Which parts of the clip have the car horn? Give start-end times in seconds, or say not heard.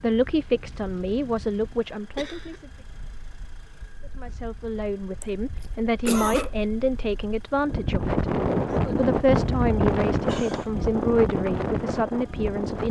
not heard.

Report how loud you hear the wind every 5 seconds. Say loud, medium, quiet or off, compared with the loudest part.
quiet, loud, loud.